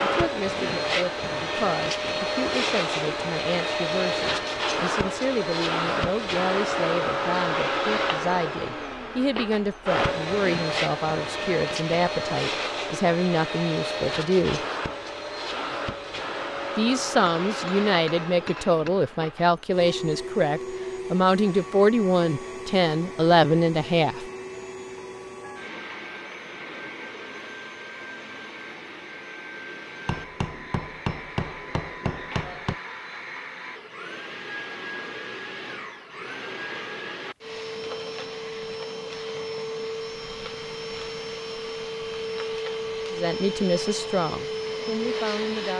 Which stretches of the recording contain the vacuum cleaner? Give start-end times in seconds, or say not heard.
0.0-45.7.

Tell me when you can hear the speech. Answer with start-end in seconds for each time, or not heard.
0.0-14.7, 16.8-24.2, 43.1-45.7.